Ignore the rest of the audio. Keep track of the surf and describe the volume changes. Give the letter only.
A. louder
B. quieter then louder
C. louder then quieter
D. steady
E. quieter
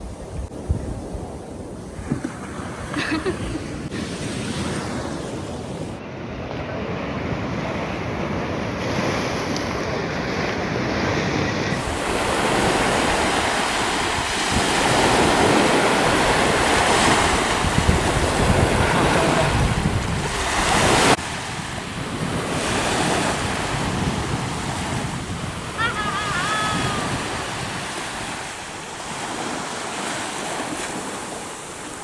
C.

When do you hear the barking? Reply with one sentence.
The barking can't be heard in this clip.